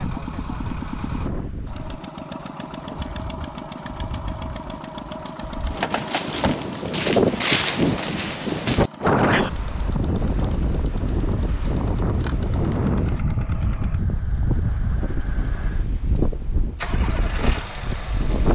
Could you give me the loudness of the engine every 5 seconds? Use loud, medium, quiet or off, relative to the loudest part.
loud, loud, medium, loud.